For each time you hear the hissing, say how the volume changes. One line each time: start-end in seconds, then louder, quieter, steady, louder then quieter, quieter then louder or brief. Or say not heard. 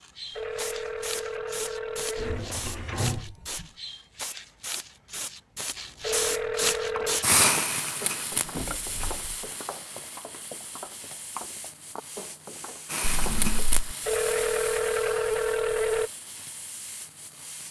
0.0-17.6 louder then quieter.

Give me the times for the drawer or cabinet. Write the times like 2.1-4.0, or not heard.
2.1-3.6, 8.3-9.3, 13.0-13.8.